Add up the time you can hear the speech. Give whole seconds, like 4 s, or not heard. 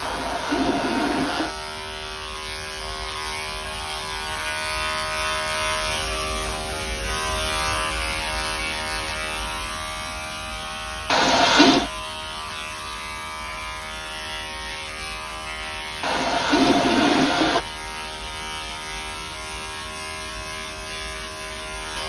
not heard.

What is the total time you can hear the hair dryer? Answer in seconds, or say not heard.
not heard.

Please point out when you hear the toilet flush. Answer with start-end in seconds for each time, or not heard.
0.0-1.6, 11.1-11.9, 16.0-17.6.